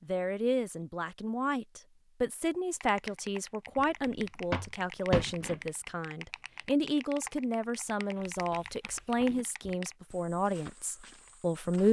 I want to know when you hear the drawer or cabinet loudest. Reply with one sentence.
The volume of the drawer or cabinet peaks at 5 seconds.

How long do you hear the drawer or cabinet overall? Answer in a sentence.
You can hear the drawer or cabinet for 2 seconds altogether.